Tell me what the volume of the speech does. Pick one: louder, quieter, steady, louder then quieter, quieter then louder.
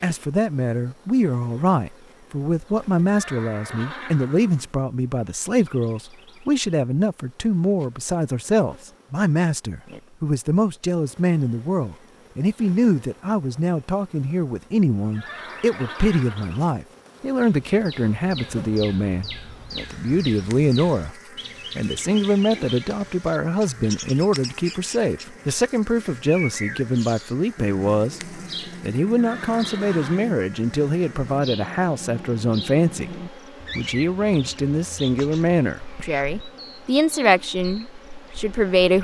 steady.